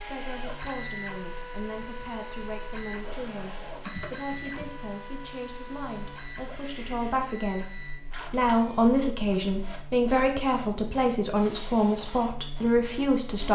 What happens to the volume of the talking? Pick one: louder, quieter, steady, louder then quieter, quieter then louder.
louder.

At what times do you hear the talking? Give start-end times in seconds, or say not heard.
0.0-13.5.